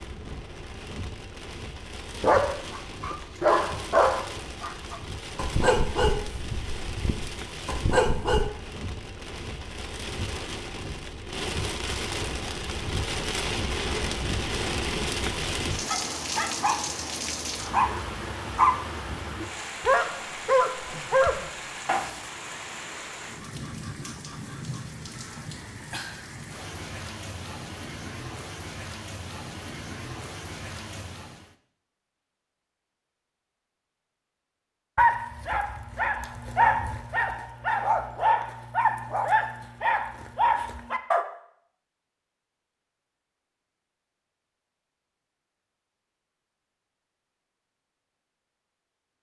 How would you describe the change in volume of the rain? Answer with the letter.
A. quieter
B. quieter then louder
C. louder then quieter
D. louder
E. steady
C.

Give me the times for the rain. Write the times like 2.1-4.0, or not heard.
0.0-31.6.